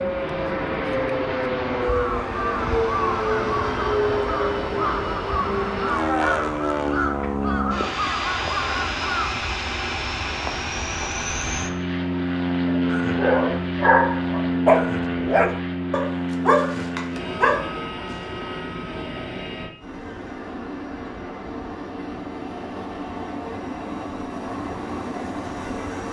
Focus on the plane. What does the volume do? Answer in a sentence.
The volume of the plane goes down.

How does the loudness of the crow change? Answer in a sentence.
The volume of the crow stays about the same.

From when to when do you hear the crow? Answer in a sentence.
The crow can be heard from 1.8 to 9.3 s.